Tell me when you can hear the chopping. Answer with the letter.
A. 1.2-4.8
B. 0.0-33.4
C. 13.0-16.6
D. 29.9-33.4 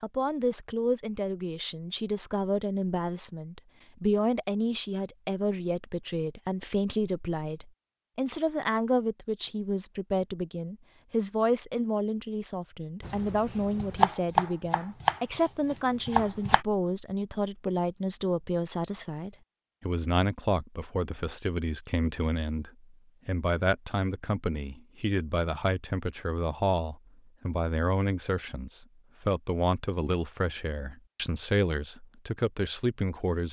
C.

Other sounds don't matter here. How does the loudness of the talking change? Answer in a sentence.
The loudness of the talking stays about the same.